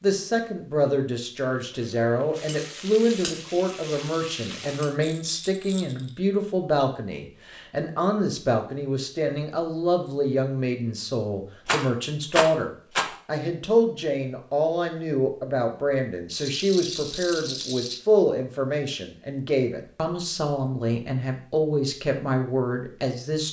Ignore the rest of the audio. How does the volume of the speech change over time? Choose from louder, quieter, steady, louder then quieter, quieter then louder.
steady.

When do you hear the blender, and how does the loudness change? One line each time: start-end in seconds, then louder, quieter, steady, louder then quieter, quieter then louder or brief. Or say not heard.
not heard.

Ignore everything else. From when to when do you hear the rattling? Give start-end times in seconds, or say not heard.
5.0-6.2, 11.7-13.2, 16.3-18.0.